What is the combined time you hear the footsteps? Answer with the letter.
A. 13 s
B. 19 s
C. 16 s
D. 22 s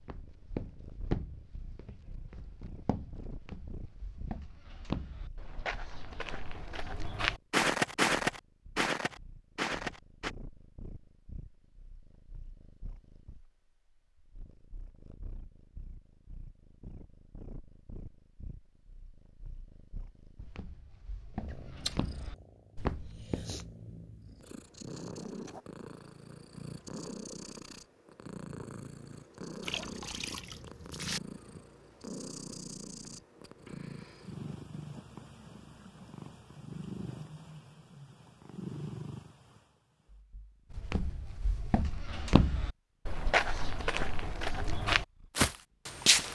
B.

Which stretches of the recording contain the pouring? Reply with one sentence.
The pouring can be heard from 29.6 to 31.2 s.